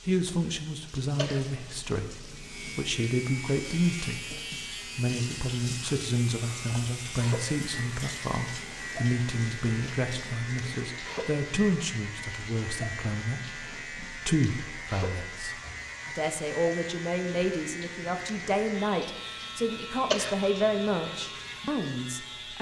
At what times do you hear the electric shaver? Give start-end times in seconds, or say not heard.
2.3-22.5.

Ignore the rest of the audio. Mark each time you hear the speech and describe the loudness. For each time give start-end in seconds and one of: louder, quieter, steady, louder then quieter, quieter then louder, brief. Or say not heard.
0.1-22.5 steady.